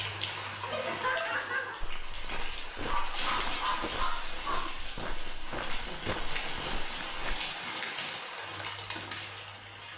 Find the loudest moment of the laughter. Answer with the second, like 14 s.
1 s.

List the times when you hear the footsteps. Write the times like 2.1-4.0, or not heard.
1.8-7.3.